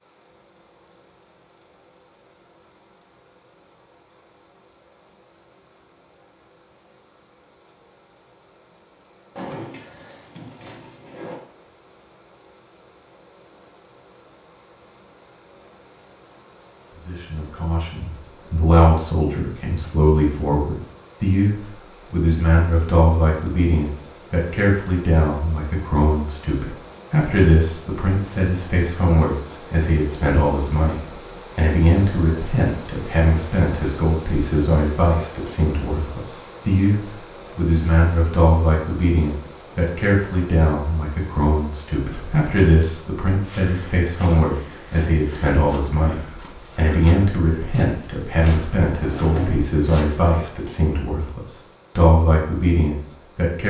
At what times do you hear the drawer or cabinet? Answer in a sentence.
You can hear the drawer or cabinet from 9.3 to 11.3 s and from 48.5 to 49.8 s.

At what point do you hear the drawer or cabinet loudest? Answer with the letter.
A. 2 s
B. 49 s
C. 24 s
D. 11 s
B.